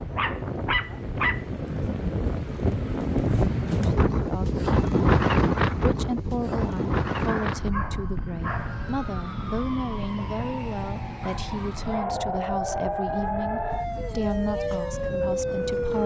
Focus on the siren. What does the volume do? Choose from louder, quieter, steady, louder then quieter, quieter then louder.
louder.